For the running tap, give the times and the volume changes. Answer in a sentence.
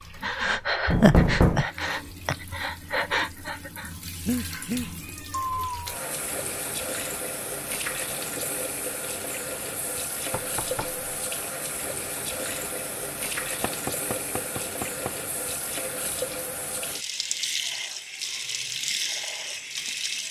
The running tap can be heard from 0.0 to 20.2 s, getting louder.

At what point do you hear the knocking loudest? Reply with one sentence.
The volume of the knocking peaks at 1 second.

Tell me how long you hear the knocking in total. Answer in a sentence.
You can hear the knocking for 3 seconds altogether.